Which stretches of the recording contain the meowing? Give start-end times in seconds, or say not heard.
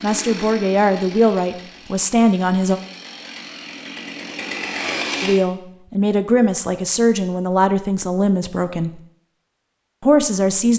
not heard.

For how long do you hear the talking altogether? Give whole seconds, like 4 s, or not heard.
7 s.